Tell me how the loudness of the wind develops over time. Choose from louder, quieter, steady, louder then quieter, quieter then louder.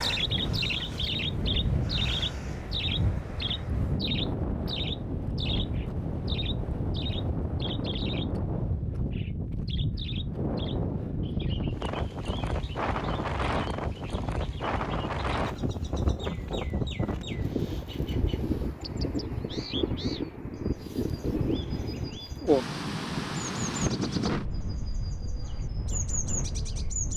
steady.